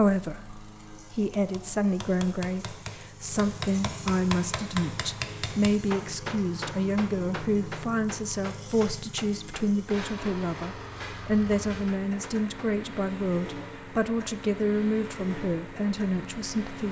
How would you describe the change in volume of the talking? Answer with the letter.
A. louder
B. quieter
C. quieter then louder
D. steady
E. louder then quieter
D.